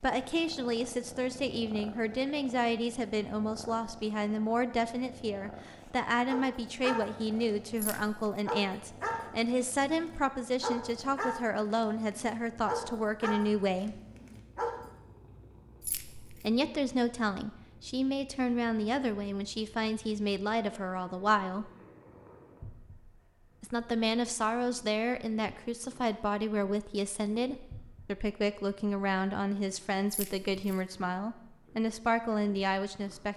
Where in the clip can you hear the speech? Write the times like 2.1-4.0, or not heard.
0.0-14.0, 16.4-21.7, 23.6-33.3.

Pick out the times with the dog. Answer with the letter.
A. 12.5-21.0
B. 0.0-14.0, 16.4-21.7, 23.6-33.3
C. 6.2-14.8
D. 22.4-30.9
C.